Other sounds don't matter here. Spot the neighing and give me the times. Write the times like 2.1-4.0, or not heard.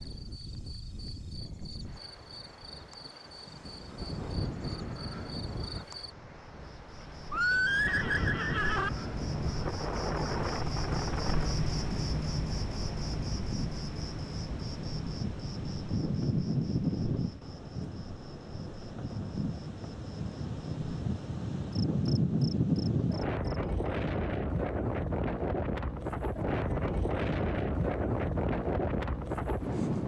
7.3-8.9.